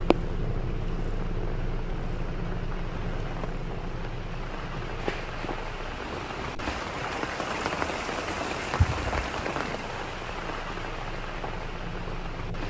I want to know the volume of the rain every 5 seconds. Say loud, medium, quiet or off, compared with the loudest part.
medium, loud, medium.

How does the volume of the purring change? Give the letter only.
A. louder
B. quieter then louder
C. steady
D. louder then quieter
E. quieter
E.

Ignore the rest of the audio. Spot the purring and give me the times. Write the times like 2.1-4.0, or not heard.
0.0-12.6.